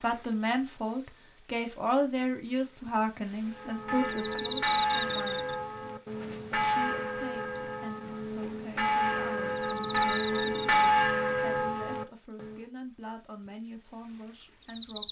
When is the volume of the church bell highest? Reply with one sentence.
The loudest moment of the church bell is at 11 seconds.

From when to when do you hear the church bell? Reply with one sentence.
The church bell can be heard from 3.5 to 12.7 s.